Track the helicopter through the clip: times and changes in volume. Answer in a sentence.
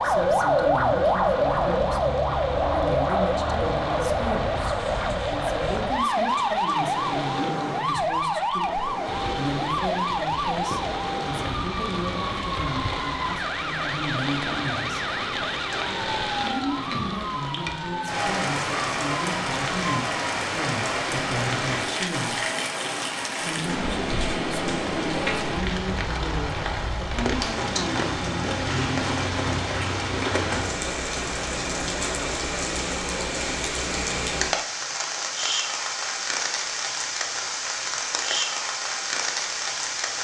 You can't hear the helicopter here.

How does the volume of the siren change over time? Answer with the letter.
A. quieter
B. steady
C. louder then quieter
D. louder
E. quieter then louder
A.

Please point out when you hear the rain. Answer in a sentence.
The rain can be heard from 0.0 to 40.2 s.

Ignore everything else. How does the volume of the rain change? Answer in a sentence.
The loudness of the rain goes up.